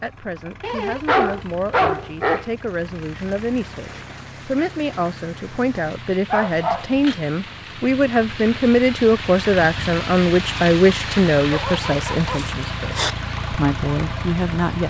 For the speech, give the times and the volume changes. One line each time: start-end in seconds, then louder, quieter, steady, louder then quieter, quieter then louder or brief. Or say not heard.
0.0-14.8 louder then quieter.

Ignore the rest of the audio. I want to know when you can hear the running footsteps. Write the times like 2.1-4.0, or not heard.
not heard.